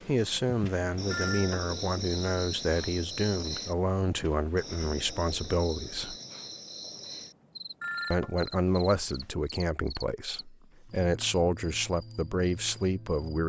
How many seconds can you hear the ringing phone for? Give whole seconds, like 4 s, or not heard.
2 s.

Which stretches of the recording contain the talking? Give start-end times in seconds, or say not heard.
0.1-6.2, 8.1-13.4.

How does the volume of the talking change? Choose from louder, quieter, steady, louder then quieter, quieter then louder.
steady.